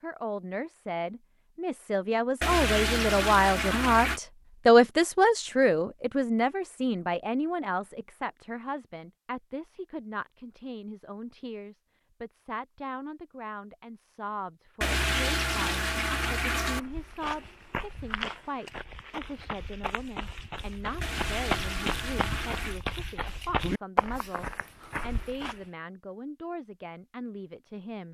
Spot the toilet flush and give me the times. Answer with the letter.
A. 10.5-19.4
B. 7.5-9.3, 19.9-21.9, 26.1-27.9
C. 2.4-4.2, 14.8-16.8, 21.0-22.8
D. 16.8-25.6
C.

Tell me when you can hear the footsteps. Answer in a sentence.
You can hear the footsteps from 16.8 to 25.6 s.